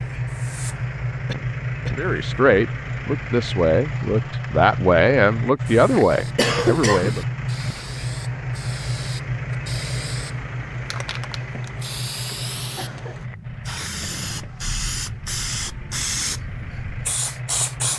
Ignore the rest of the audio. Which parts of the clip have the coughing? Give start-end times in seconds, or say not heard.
1.2-2.0, 6.3-7.2, 12.8-13.3.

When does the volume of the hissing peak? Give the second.
16 s.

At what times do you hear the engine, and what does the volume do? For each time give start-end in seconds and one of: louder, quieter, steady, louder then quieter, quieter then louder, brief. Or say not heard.
0.0-17.9 quieter.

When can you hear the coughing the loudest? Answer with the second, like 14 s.
7 s.